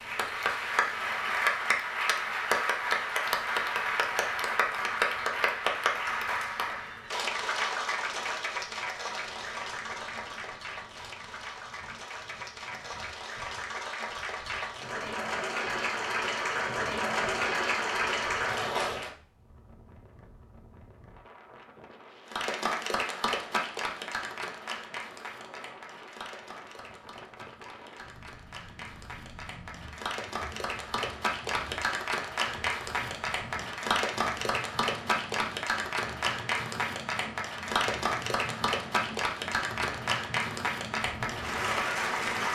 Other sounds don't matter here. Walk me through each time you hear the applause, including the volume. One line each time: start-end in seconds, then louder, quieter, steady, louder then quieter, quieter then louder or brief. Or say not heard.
0.0-19.1 quieter then louder
22.3-42.5 quieter then louder.